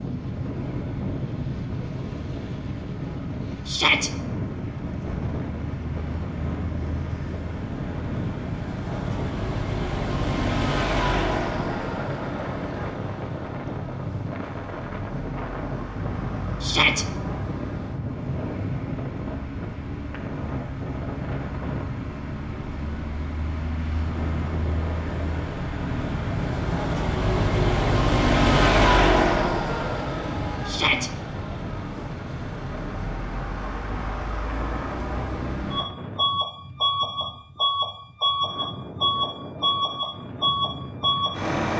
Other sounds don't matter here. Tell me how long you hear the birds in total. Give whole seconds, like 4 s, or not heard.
not heard.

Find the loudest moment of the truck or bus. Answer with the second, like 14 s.
29 s.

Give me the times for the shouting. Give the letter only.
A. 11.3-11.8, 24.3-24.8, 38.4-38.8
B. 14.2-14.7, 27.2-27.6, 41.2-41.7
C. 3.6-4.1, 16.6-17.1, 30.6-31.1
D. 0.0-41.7
C.